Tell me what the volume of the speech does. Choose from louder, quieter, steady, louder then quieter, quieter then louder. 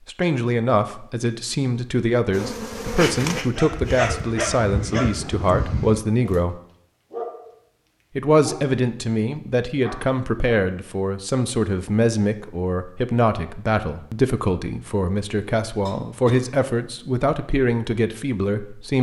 steady.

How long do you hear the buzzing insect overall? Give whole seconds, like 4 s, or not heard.
2 s.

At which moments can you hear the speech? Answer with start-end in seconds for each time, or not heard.
0.1-6.6, 8.2-18.9.